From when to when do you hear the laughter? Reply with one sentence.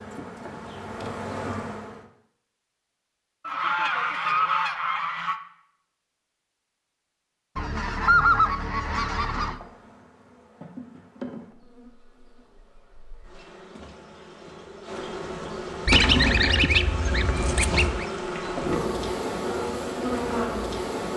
The laughter can't be heard in this clip.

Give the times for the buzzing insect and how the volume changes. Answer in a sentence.
The buzzing insect can be heard briefly from 0.0 to 2.0 s; and from 9.4 to 21.1 s, getting quieter then louder.